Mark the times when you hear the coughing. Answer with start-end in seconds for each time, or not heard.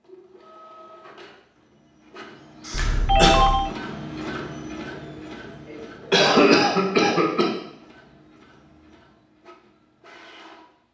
2.6-3.3, 5.7-7.5.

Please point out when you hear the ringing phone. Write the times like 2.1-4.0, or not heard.
2.7-3.7.